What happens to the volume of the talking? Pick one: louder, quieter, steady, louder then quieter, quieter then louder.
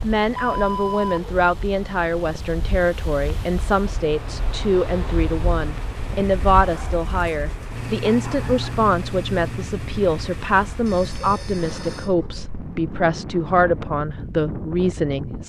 steady.